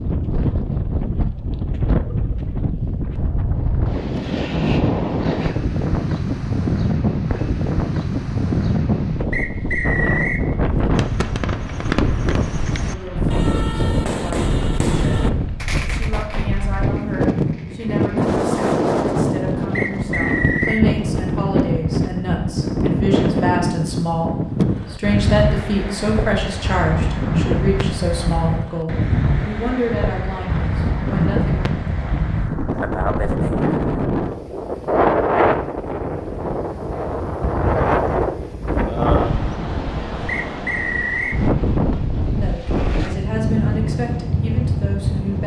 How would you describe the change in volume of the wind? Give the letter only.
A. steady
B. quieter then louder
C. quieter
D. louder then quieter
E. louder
A.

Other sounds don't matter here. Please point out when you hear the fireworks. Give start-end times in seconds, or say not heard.
10.8-18.4.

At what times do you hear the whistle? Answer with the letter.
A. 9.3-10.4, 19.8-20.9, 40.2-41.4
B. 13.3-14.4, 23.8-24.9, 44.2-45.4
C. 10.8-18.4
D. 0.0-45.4
A.